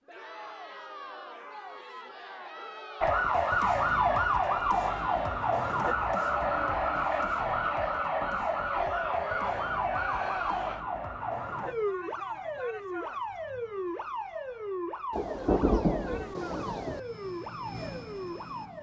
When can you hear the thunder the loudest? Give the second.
16 s.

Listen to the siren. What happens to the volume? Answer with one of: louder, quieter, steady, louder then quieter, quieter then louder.
quieter.